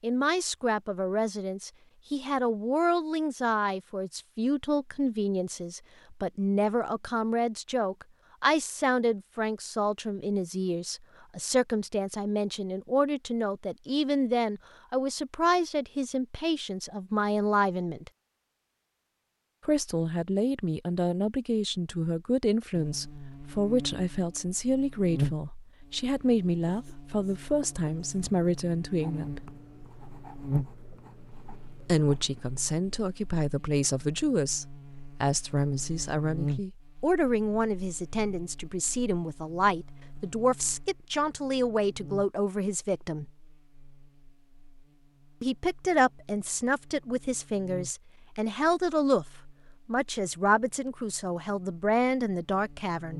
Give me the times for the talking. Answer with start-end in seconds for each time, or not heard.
0.0-18.1, 19.6-29.4, 31.8-43.3, 45.4-53.1.